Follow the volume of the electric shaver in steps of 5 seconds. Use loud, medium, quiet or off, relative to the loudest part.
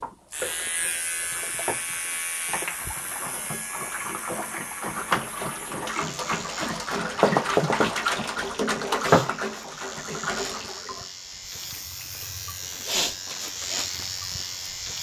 loud, medium, loud.